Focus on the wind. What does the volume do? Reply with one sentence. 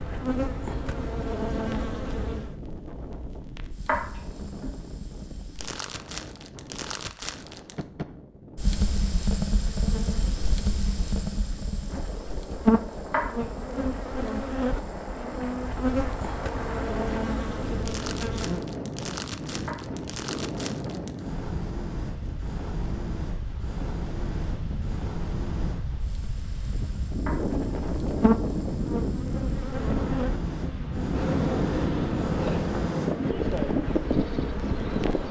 The volume of the wind goes up.